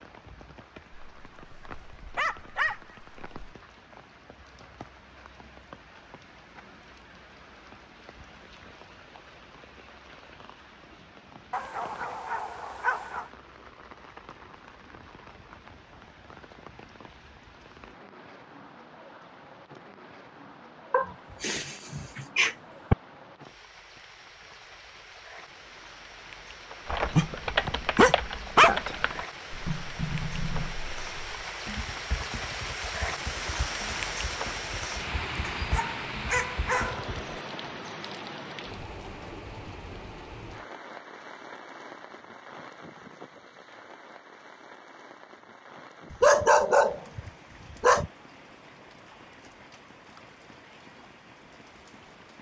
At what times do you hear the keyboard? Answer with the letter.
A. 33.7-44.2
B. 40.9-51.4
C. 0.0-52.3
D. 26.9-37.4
D.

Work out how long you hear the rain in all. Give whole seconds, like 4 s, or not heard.
52 s.